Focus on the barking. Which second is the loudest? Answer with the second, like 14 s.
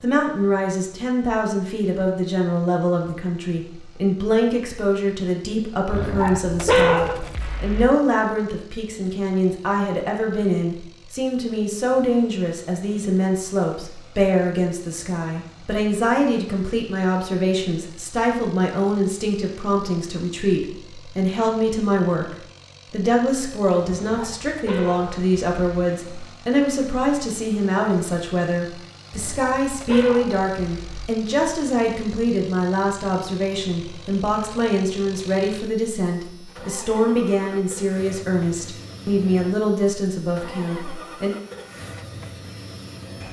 7 s.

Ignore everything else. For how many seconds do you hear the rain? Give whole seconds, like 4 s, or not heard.
not heard.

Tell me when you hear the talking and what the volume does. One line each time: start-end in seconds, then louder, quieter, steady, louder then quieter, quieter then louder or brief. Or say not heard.
0.0-41.3 steady.